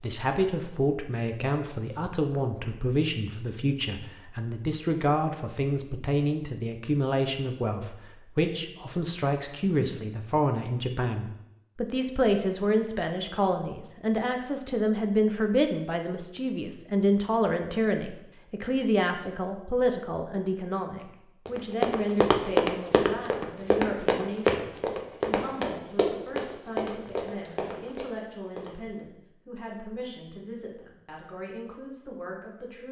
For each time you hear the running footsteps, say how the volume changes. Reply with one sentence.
You can hear the running footsteps from 21.4 to 28.7 s, getting quieter.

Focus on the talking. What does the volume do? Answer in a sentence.
The volume of the talking goes down.